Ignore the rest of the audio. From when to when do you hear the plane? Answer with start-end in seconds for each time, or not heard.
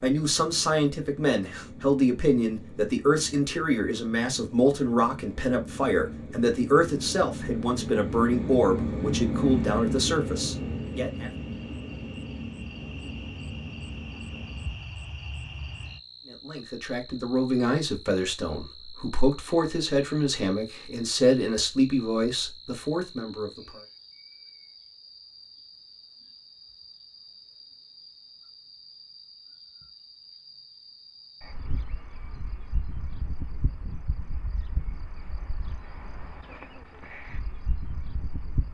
0.1-14.8.